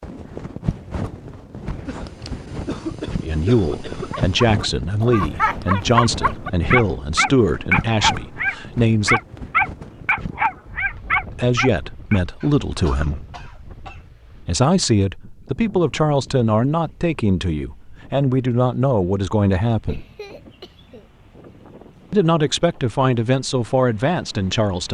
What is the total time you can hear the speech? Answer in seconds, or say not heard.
16 s.